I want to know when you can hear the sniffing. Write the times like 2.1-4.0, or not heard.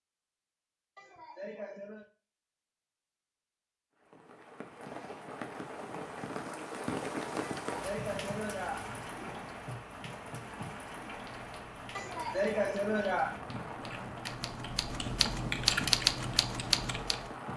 0.9-2.0, 7.7-9.4, 11.9-13.3.